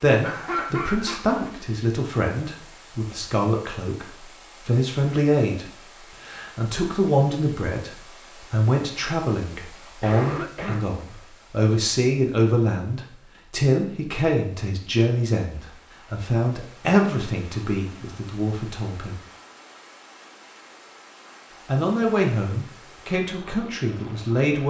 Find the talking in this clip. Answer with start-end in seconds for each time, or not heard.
0.0-7.9, 8.5-19.1, 21.6-24.6.